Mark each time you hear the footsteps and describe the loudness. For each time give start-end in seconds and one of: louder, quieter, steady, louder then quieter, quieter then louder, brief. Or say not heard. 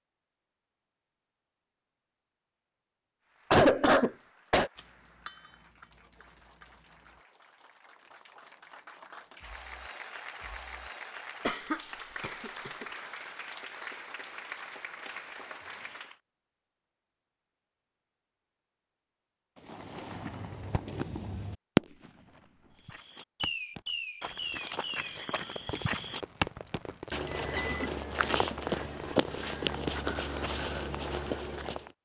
22.8-31.9 louder.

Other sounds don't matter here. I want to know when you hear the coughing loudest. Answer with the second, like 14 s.
4 s.